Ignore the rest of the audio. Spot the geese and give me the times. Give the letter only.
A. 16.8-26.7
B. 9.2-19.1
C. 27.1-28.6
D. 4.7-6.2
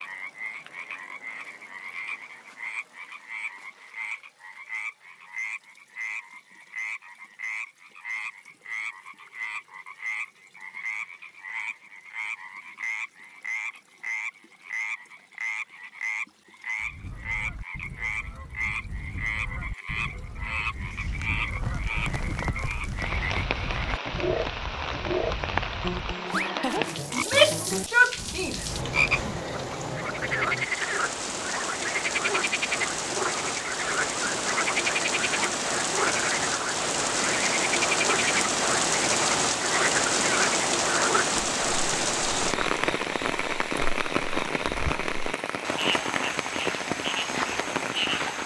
A.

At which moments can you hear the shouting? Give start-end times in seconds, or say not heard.
27.1-28.6.